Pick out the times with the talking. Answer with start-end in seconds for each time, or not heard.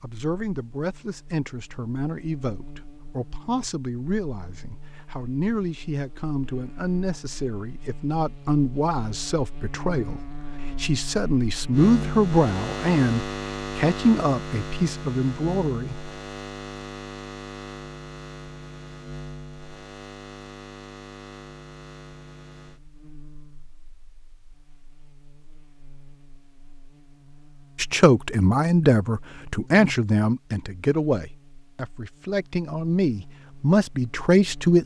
0.0-16.1, 27.8-34.8.